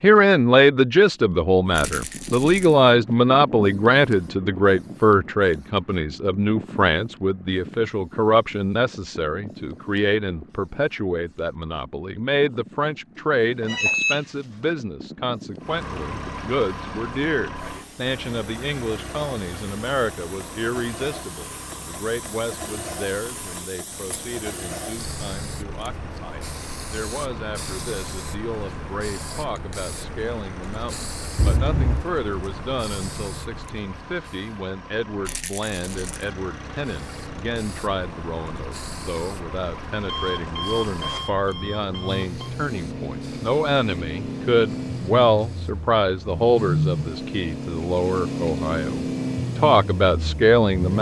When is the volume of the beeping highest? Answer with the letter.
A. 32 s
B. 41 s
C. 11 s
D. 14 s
D.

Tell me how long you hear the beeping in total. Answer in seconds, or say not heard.
4 s.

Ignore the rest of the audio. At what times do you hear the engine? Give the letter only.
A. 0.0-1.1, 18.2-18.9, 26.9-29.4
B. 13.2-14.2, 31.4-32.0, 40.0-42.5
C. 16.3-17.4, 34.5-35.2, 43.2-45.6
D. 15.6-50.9
D.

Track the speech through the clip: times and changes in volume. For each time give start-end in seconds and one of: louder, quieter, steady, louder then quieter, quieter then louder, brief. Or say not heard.
0.0-50.9 quieter then louder.